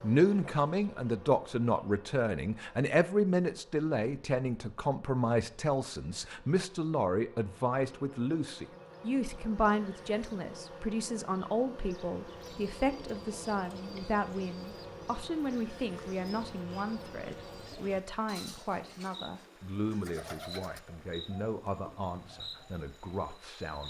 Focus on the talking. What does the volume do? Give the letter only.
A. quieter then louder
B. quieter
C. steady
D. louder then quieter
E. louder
B.